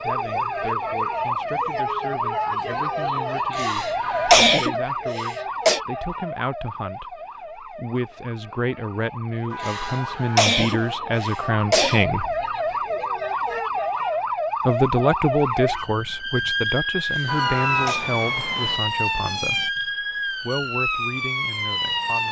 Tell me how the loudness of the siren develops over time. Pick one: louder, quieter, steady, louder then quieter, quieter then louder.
quieter then louder.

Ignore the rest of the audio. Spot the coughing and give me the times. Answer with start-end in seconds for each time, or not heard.
3.5-5.8, 9.6-12.1, 17.1-18.1.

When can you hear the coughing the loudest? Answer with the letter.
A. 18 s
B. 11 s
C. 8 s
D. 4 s
D.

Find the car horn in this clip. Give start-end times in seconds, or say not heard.
4.0-4.5, 9.5-11.0, 17.2-18.8.